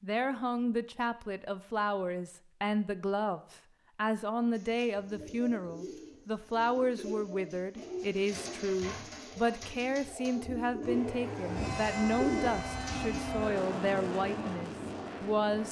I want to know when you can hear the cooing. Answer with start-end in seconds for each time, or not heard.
4.5-13.2.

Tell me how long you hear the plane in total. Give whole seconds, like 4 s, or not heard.
5 s.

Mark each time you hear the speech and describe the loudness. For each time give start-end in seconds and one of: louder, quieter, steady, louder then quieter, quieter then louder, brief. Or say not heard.
0.0-15.6 steady.